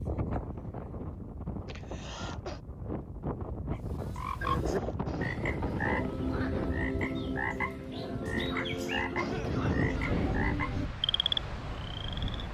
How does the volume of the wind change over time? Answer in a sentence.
The volume of the wind goes up.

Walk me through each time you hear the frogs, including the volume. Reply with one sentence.
The frogs can be heard from 3.7 to 12.4 s, at a steady volume.